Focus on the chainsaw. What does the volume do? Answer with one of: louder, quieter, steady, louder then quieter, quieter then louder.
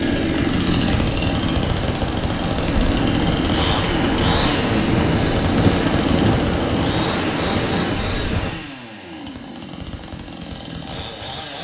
quieter.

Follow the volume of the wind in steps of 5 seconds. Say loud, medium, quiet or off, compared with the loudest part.
loud, loud, off.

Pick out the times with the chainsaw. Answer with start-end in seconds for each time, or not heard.
0.0-11.5.